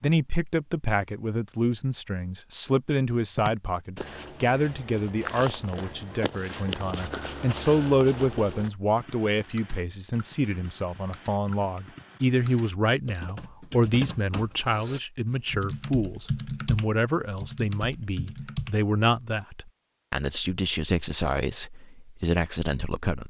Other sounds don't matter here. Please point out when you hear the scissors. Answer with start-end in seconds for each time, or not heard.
not heard.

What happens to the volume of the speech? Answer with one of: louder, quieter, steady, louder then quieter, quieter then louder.
steady.